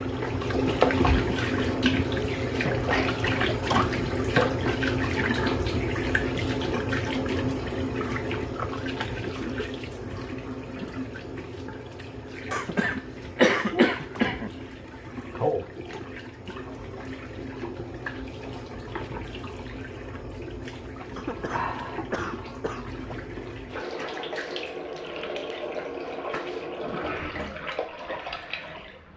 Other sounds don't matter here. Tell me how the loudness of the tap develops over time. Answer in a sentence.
The volume of the tap goes down.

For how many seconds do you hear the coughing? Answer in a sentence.
The coughing can be heard for 5 seconds in total.